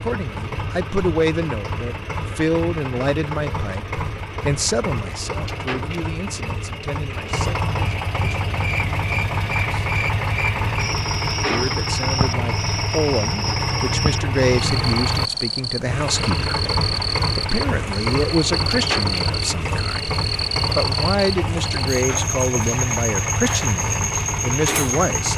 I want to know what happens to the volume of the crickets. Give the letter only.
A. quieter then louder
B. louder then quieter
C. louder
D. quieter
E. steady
E.